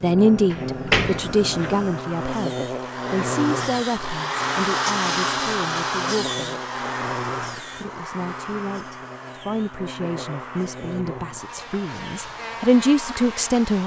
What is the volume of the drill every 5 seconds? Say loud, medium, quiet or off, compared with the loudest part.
loud, loud, medium.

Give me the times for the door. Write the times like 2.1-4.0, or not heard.
0.5-1.8.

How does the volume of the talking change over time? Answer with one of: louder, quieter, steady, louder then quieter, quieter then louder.
quieter then louder.